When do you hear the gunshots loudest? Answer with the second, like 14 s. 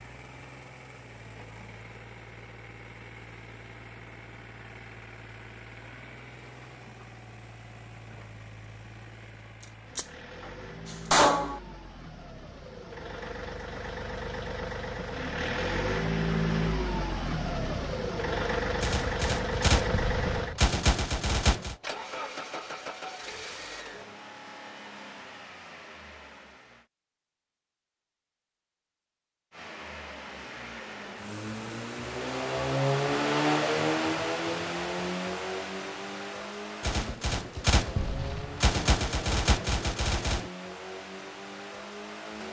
11 s.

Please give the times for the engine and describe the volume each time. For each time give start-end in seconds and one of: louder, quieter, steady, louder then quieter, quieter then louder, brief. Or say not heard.
0.0-26.9 louder then quieter
29.5-42.4 louder then quieter.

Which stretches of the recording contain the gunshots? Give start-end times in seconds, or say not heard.
9.6-11.6, 18.8-21.8, 36.8-40.5.